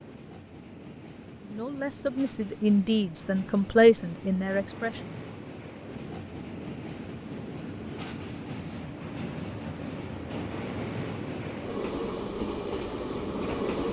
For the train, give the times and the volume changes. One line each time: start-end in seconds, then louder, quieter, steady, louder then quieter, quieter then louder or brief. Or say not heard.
0.0-13.8 louder.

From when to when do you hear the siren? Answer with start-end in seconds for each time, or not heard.
not heard.